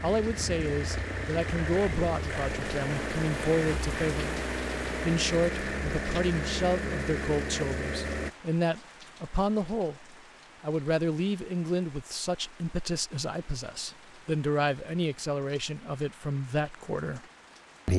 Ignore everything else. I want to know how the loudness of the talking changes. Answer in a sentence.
The volume of the talking stays about the same.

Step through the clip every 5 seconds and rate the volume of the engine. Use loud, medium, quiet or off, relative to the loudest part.
loud, loud, off, off.